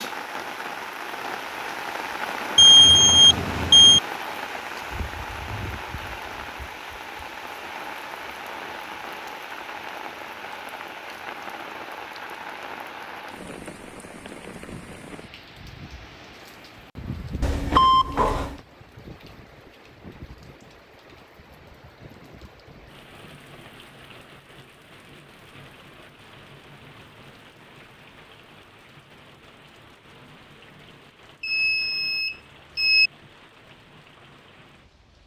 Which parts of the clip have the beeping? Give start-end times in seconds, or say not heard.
2.5-4.0, 17.4-18.6, 31.4-33.1.